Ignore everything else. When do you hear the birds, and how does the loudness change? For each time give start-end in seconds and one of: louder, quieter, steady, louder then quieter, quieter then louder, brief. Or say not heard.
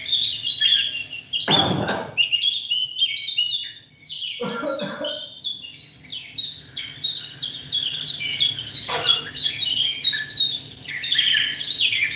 0.0-12.1 quieter then louder.